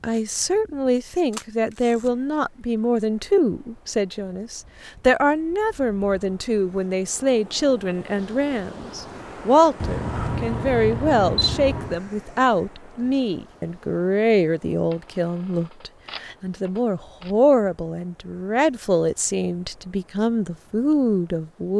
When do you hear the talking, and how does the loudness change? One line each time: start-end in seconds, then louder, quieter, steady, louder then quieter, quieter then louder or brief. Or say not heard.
0.0-21.7 steady.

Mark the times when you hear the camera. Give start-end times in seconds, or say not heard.
1.3-2.1, 9.8-12.0, 14.9-17.3.